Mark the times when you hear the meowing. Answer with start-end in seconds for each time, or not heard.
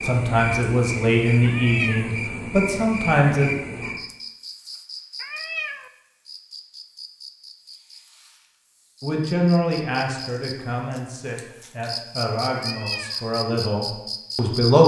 1.4-2.1, 5.2-5.9, 12.6-13.2.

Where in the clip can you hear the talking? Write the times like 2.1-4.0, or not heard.
0.0-3.5, 9.0-14.8.